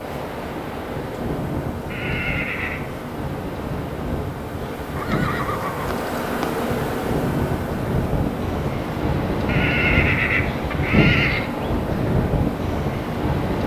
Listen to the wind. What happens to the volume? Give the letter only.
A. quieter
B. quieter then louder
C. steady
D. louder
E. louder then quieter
D.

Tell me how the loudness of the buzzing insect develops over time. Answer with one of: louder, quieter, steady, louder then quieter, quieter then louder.
louder then quieter.